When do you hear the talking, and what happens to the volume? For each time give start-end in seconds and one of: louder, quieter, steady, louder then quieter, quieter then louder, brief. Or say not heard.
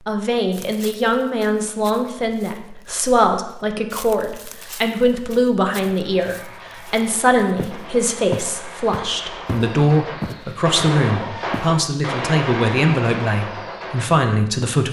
0.0-14.8 steady.